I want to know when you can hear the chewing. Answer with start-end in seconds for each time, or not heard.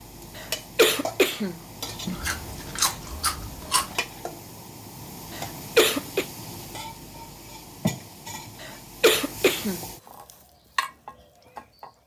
2.0-4.0.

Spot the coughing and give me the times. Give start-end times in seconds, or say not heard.
0.3-1.6, 5.3-6.2, 8.6-9.8.